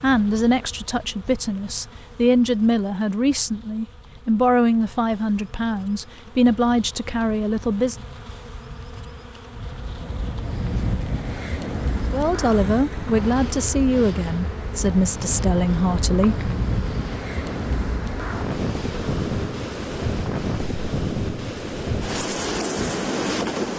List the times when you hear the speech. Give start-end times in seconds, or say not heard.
0.0-8.0, 12.1-16.5.